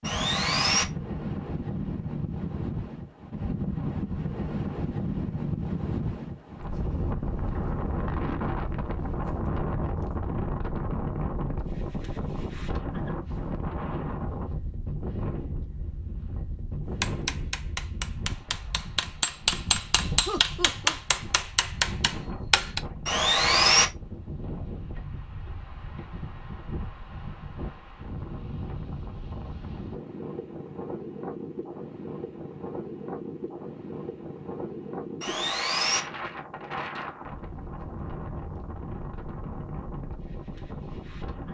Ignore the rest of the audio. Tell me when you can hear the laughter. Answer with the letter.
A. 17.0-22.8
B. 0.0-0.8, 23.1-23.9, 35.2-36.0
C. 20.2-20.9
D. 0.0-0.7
C.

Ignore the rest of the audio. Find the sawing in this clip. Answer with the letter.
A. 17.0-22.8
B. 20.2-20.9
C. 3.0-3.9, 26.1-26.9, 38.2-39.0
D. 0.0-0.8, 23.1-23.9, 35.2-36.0
D.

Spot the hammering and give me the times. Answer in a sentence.
You can hear the hammering from 17.0 to 22.8 s.